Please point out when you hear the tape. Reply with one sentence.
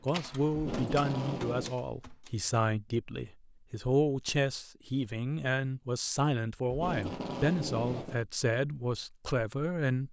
You can hear the tape from 0.5 to 1.8 s and from 6.7 to 8.2 s.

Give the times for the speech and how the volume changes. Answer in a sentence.
The speech can be heard from 0.0 to 10.0 s, at a steady volume.